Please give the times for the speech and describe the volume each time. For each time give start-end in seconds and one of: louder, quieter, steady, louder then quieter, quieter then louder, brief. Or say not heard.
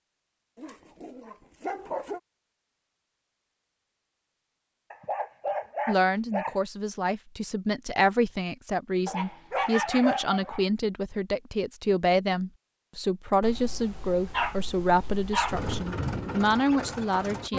5.8-17.5 steady.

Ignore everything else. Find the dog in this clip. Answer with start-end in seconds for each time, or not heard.
0.6-2.2, 4.9-6.6, 9.1-10.7, 13.4-15.7.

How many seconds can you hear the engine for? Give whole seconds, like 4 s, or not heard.
2 s.